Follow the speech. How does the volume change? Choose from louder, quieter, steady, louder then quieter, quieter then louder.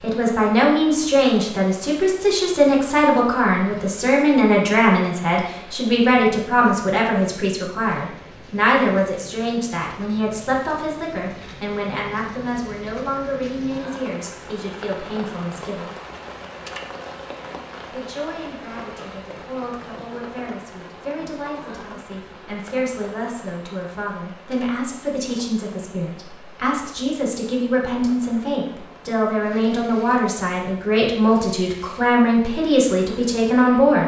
quieter then louder.